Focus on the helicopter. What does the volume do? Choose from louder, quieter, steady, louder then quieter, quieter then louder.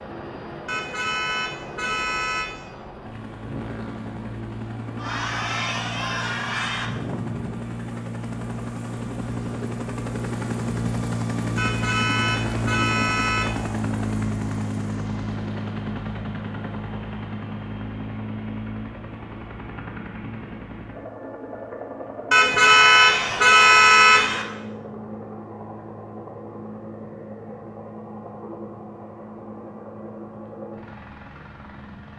louder then quieter.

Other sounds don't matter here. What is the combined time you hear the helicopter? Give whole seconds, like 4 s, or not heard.
32 s.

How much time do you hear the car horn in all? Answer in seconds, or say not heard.
6 s.